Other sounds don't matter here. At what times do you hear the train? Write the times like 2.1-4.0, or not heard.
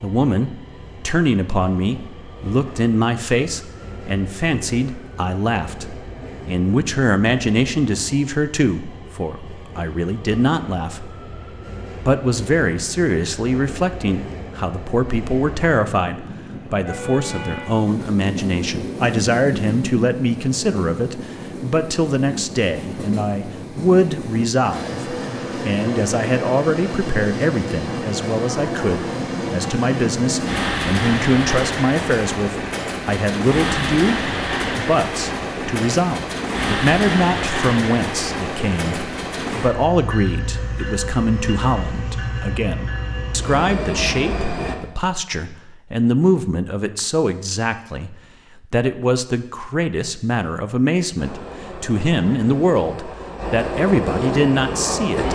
0.0-44.8, 51.1-55.2.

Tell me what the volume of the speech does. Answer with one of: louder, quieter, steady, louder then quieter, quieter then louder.
steady.